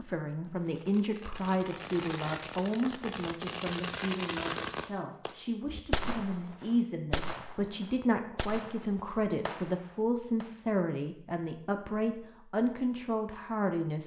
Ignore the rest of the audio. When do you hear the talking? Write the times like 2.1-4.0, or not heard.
0.0-14.0.